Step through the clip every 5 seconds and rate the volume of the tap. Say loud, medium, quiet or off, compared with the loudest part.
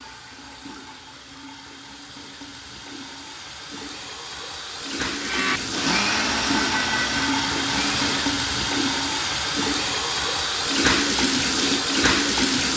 quiet, loud, loud.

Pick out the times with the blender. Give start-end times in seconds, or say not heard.
5.2-8.2.